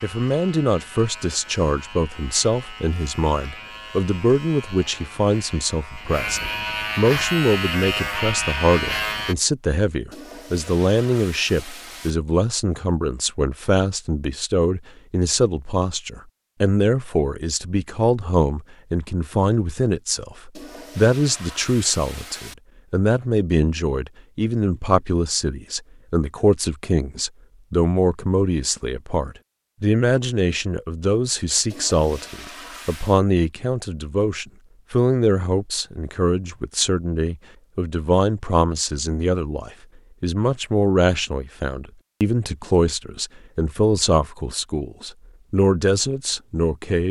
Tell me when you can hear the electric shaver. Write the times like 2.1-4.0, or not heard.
0.0-9.3.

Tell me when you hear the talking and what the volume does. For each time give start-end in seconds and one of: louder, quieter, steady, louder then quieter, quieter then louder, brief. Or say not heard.
0.0-47.0 steady.